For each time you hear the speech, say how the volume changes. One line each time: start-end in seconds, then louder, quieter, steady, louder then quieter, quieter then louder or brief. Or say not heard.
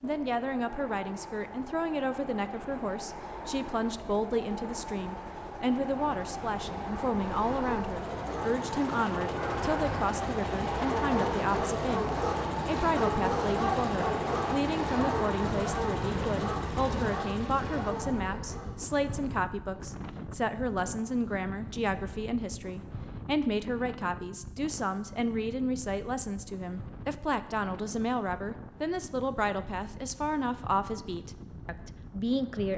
0.0-32.7 steady.